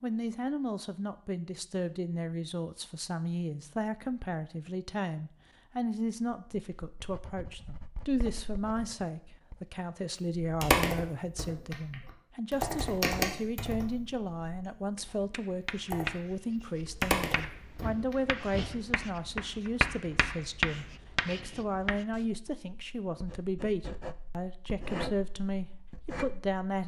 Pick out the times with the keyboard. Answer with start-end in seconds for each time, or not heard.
10.4-18.4.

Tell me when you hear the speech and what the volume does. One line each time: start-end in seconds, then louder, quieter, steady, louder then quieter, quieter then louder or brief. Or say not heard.
0.0-26.8 steady.